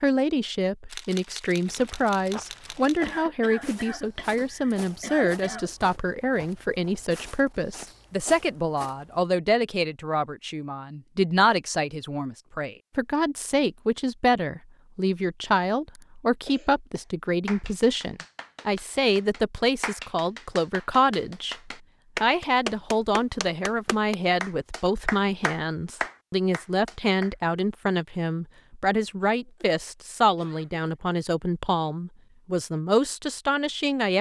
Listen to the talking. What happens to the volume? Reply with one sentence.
The volume of the talking stays about the same.